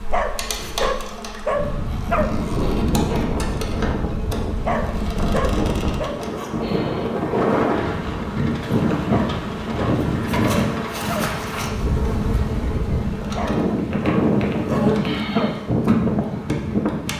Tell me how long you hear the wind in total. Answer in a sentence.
The wind can be heard for 17 seconds in total.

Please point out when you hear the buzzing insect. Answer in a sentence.
The buzzing insect can be heard from 0.0 to 17.1 s.